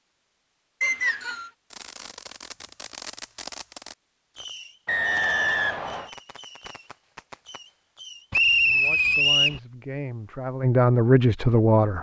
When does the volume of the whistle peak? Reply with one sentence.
The loudest moment of the whistle is at 9 seconds.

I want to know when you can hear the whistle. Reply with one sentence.
You can hear the whistle from 0.8 to 1.5 s, from 4.8 to 6.1 s and from 8.3 to 9.6 s.